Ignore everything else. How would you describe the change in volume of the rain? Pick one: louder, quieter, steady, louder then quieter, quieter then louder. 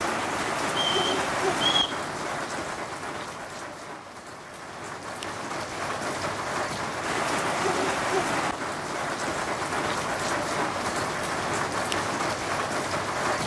quieter then louder.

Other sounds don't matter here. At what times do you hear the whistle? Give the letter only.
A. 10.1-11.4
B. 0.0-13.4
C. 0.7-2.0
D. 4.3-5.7
C.